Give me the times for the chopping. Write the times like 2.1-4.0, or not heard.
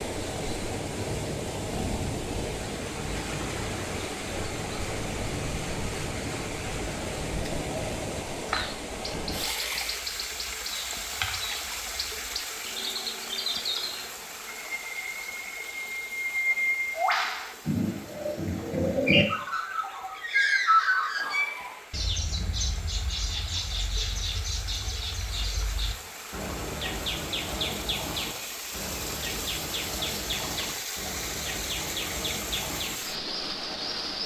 not heard.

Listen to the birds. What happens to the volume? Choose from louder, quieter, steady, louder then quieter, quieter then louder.
louder then quieter.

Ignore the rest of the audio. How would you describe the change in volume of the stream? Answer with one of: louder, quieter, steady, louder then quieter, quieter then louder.
quieter then louder.